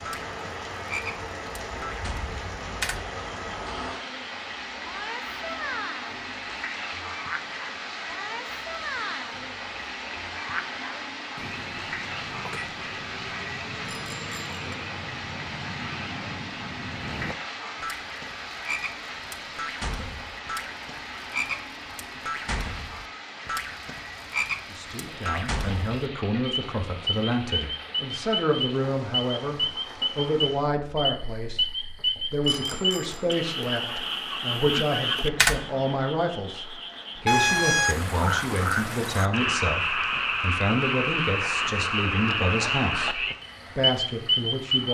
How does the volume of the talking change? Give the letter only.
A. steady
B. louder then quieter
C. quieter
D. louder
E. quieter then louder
A.